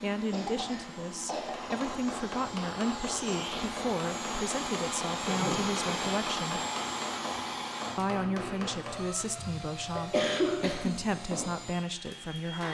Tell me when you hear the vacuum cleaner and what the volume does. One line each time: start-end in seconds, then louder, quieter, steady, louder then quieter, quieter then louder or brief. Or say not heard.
0.0-12.6 louder then quieter.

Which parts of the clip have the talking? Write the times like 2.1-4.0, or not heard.
0.0-6.6, 8.0-12.6.